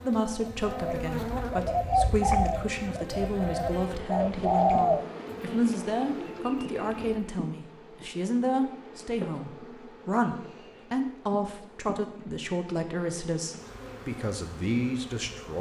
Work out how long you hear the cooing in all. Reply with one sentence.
The cooing can be heard for 7 seconds in total.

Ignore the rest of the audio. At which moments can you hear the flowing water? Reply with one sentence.
The flowing water can't be heard in this clip.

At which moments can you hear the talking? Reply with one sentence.
The talking can be heard from 0.0 to 15.5 s.